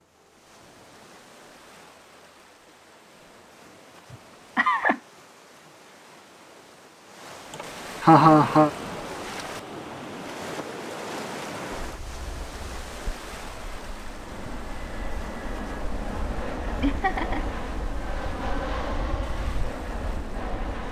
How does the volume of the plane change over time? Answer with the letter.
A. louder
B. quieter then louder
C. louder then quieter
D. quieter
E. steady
B.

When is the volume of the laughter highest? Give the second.
8 s.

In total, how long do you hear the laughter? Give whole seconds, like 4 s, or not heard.
3 s.